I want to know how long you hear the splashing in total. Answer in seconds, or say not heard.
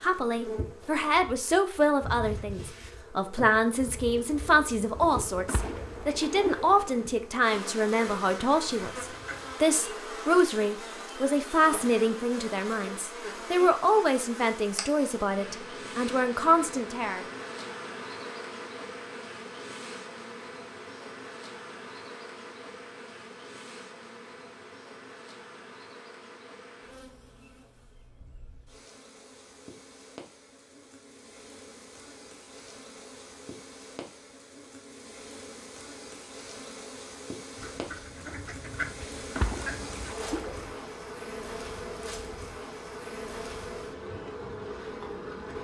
3 s.